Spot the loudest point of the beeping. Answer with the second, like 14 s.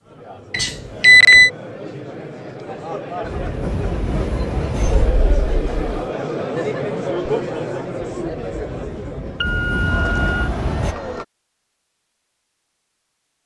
1 s.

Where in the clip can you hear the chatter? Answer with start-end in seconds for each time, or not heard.
0.0-11.2.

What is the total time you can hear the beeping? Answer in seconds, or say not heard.
3 s.